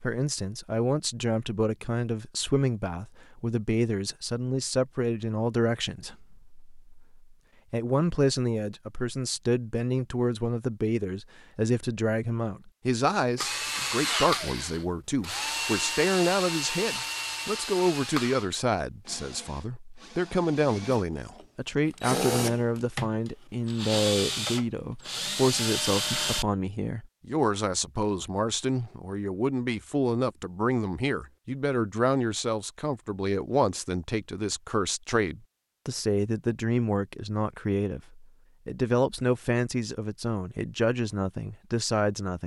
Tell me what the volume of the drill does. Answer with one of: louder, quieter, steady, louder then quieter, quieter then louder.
quieter then louder.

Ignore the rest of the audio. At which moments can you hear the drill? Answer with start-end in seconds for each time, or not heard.
13.3-26.4.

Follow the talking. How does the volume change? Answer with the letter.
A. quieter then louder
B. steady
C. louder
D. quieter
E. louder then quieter
B.